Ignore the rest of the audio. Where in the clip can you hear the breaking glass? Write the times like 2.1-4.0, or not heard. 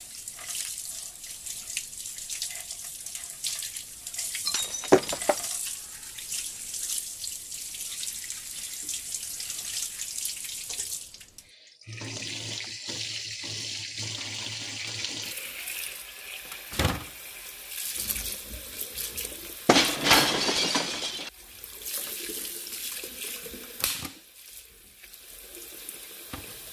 4.5-5.4, 19.6-21.3.